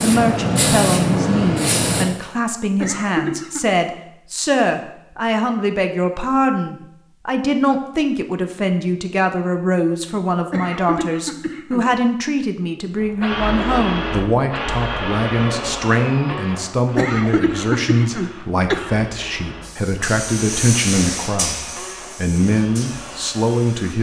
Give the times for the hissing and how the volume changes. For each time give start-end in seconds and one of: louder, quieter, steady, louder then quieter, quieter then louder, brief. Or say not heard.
0.0-2.0 brief
19.6-23.9 quieter.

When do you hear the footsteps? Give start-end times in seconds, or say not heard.
not heard.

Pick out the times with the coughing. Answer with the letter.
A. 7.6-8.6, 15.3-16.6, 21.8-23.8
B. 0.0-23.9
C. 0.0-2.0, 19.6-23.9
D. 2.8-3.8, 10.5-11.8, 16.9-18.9
D.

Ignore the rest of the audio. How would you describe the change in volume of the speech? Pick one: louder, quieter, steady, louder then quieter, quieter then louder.
steady.